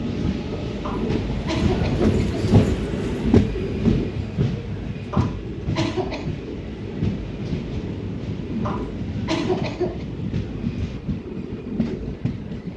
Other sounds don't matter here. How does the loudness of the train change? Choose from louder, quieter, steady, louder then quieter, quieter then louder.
quieter.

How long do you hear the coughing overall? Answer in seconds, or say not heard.
4 s.